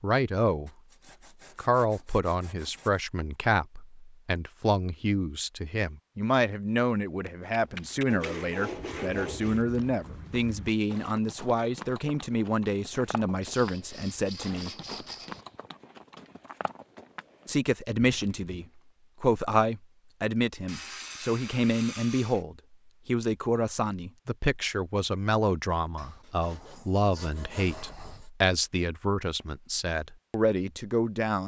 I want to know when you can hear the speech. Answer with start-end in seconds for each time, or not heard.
0.0-0.7, 1.6-14.7, 17.4-31.4.